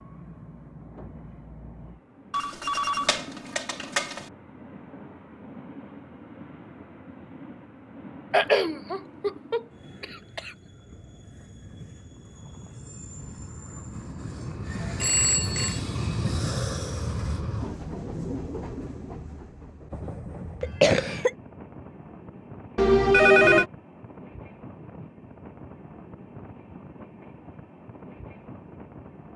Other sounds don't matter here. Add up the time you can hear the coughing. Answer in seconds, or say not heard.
3 s.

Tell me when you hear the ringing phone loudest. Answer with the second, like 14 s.
23 s.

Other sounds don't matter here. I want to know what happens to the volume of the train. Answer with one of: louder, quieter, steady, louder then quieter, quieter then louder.
louder then quieter.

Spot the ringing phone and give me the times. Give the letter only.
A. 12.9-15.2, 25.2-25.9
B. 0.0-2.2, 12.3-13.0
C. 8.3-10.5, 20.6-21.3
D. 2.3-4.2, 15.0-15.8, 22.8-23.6
D.